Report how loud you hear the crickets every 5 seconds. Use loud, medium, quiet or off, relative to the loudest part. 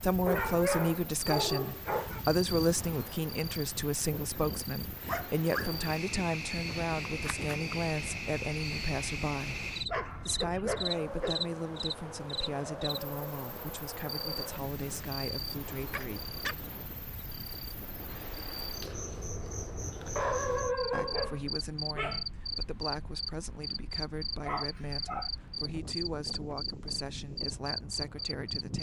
medium, loud, loud, medium, loud, loud.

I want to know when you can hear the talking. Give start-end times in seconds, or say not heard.
0.0-9.7, 10.2-16.4, 20.9-28.7.